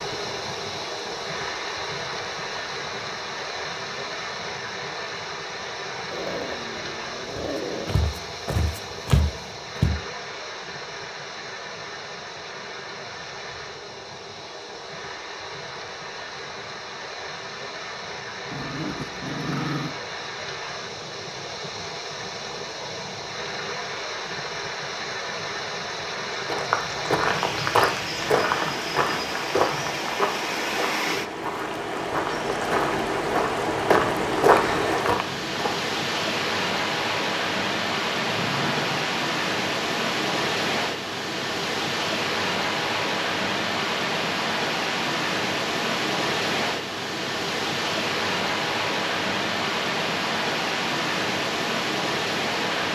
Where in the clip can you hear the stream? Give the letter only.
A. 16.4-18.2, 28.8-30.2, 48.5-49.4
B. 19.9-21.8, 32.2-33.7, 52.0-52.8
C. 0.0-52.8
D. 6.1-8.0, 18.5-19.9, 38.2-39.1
C.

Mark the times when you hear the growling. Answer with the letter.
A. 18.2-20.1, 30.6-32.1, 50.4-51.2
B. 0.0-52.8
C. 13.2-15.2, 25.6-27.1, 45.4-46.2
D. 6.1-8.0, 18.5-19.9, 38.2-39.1
D.